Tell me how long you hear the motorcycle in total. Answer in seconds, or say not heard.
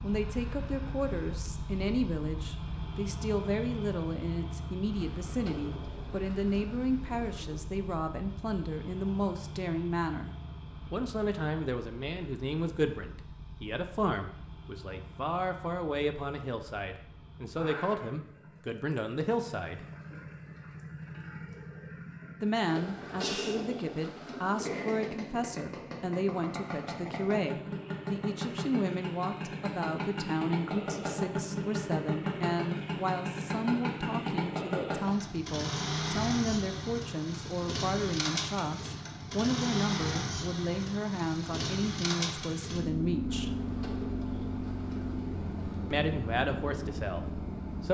48 s.